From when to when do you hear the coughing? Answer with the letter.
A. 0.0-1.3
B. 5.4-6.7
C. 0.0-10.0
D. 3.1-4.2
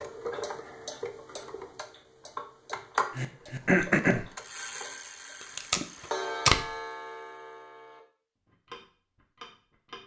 D.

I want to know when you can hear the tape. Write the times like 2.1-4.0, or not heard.
5.4-6.7.